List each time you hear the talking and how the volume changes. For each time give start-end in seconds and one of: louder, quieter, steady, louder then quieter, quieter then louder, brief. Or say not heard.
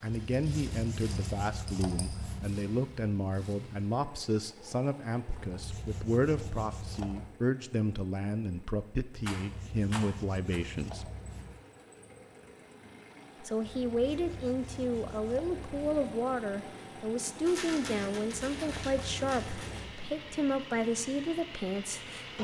0.0-11.1 steady
13.4-22.3 steady.